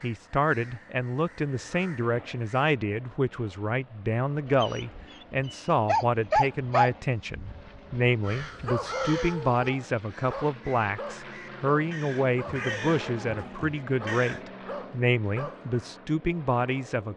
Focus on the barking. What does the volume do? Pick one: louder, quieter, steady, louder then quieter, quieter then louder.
quieter.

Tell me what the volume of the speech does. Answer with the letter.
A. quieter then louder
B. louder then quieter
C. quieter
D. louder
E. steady
E.